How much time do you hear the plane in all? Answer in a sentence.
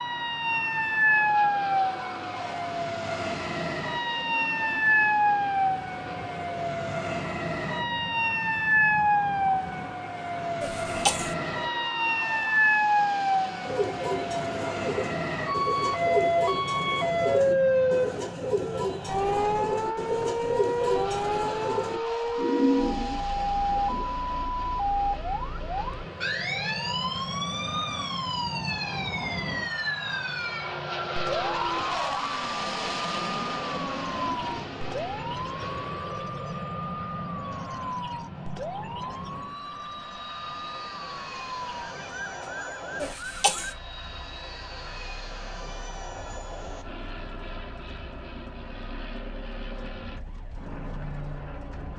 The plane can be heard for 52 seconds in total.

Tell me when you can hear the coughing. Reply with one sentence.
You can hear the coughing from 10.6 to 11.3 s and from 43.0 to 43.8 s.